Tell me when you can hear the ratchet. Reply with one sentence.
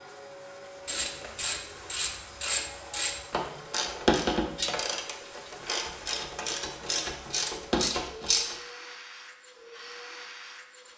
You can hear the ratchet from 0.8 to 8.6 s.